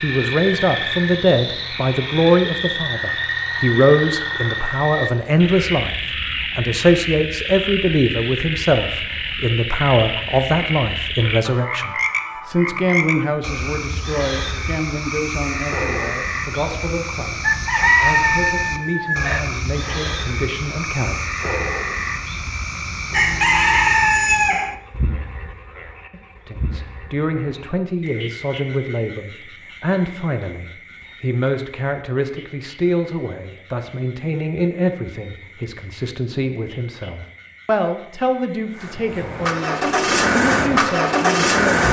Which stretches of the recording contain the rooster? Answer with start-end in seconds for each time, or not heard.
17.4-19.4, 23.1-24.8.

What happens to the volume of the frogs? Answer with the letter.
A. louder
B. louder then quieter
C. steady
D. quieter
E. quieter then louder
D.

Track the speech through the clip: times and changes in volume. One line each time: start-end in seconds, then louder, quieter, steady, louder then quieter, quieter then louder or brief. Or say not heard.
0.0-21.2 quieter
26.4-41.8 steady.